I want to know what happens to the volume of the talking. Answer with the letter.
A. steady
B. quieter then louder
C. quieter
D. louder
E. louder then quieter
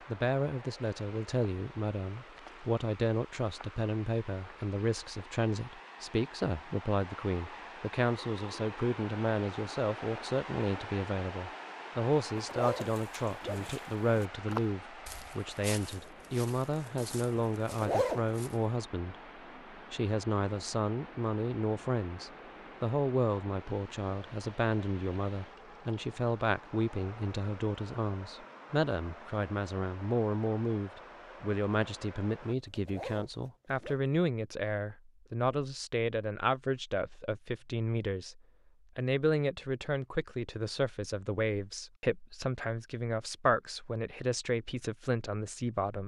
A.